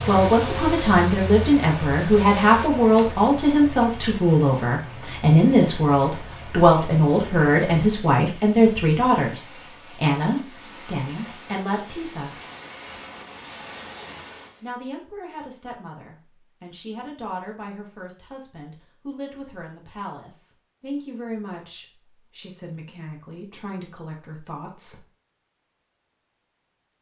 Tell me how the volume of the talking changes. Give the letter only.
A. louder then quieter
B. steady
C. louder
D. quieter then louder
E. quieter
E.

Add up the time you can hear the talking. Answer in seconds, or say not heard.
23 s.